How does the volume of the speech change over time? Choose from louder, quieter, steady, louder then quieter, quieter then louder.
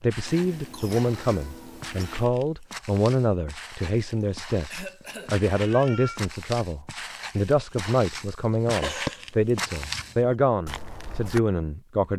steady.